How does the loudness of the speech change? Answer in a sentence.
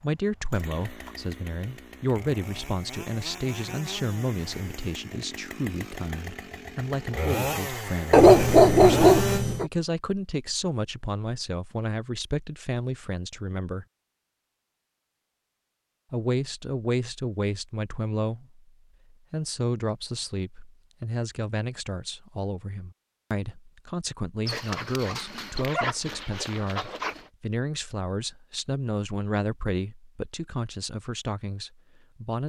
The loudness of the speech stays about the same.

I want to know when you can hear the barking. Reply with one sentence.
The barking can be heard from 8.1 to 9.7 s and from 24.4 to 27.2 s.